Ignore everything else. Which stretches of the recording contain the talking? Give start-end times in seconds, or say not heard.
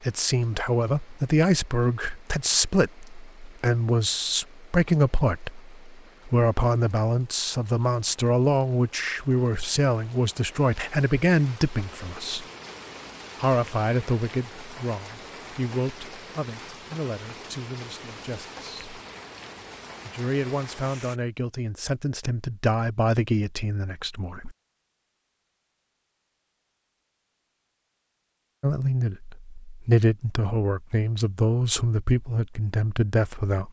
0.0-12.4, 13.4-19.0, 20.1-24.6, 28.6-33.6.